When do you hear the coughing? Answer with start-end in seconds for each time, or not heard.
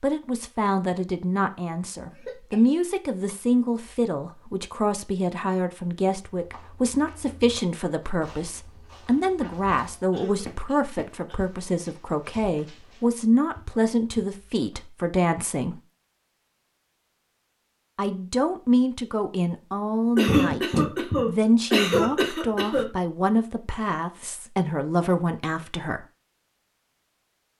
2.1-2.6, 10.1-11.4, 20.1-22.9.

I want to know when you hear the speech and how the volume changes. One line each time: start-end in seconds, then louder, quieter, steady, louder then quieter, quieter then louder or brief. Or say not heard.
0.0-15.8 steady
17.9-26.1 steady.